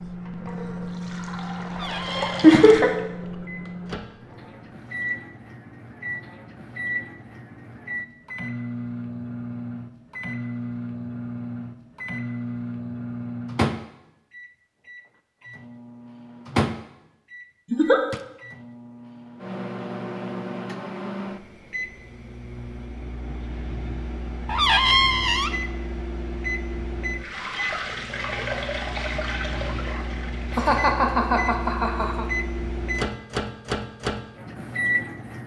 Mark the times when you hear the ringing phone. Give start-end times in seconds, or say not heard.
not heard.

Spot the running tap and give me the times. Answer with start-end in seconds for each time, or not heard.
0.1-5.3, 27.2-30.8.